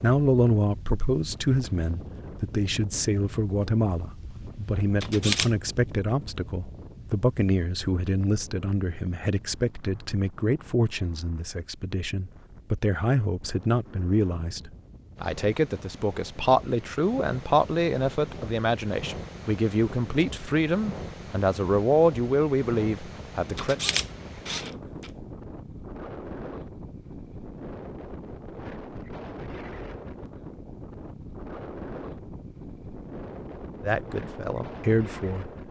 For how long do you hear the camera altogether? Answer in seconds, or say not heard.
2 s.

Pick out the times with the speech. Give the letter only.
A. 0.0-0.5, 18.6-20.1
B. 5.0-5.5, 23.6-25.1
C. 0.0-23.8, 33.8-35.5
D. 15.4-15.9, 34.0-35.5
C.